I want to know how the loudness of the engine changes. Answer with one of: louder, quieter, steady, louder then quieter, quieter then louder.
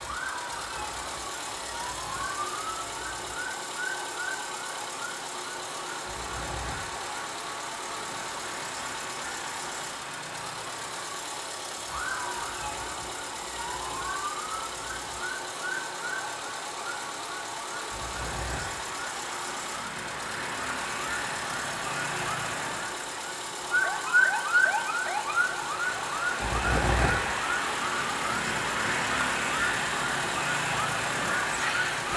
steady.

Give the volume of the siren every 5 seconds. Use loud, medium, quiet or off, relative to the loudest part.
medium, quiet, medium, medium, loud, loud, loud.